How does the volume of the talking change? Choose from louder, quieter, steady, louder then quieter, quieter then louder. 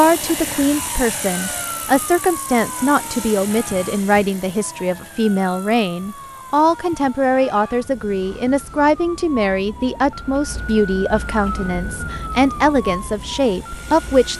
steady.